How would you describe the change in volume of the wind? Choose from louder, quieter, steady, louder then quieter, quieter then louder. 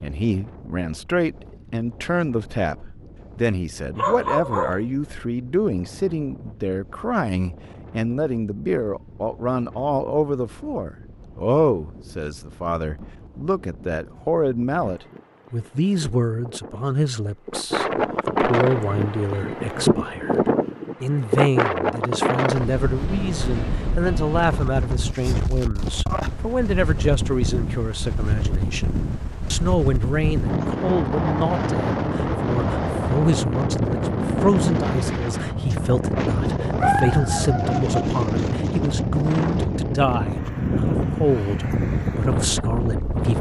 louder.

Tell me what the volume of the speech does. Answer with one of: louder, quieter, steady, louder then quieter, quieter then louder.
steady.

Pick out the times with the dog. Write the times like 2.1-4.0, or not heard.
4.0-4.9, 36.8-37.9.